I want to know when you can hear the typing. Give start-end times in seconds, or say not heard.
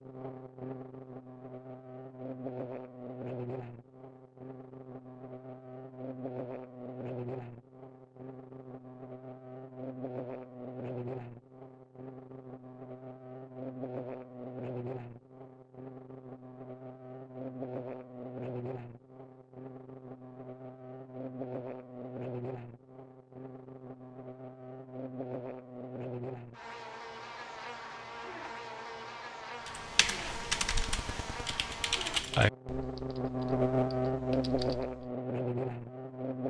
29.6-35.1.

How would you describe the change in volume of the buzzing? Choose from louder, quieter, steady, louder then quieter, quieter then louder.
louder.